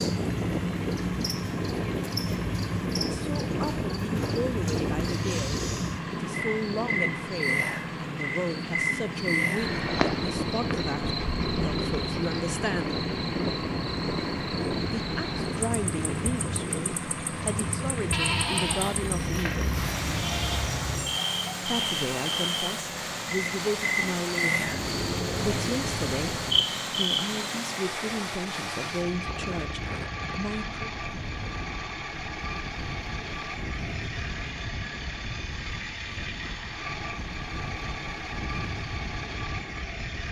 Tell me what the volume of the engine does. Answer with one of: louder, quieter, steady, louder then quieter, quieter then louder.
steady.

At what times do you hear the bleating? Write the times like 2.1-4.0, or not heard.
18.1-20.7.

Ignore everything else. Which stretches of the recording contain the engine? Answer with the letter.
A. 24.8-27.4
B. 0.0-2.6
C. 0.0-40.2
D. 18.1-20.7
C.